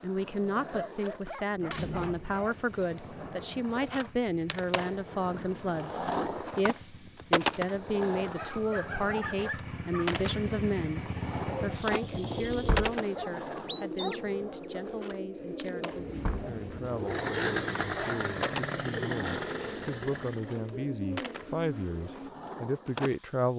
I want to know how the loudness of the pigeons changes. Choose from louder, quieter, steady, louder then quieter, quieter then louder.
steady.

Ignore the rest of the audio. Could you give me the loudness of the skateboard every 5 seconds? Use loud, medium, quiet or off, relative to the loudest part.
medium, loud, loud, medium, medium.